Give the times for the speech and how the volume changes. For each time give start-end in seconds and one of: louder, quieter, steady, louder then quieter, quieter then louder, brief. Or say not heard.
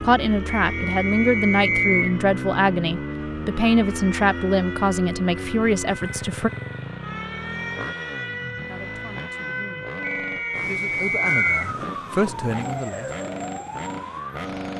0.0-6.5 steady
8.7-9.9 brief
10.6-13.2 brief.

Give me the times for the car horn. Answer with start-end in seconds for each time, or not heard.
not heard.